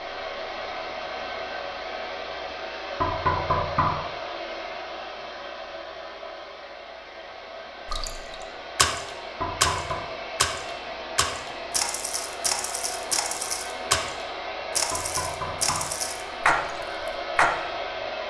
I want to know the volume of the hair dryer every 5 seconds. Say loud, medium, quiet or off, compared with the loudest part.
loud, medium, loud, loud.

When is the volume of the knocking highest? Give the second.
3 s.